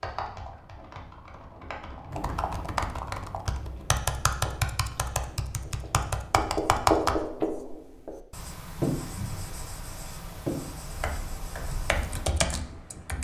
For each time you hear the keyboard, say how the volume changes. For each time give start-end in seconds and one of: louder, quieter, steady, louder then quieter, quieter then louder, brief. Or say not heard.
0.0-7.5 louder
10.9-13.2 brief.